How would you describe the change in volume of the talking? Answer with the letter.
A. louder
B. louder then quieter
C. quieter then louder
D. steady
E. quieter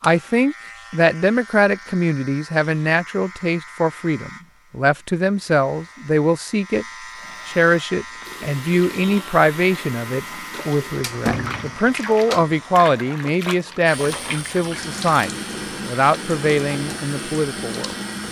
D.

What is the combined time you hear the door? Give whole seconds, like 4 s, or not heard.
2 s.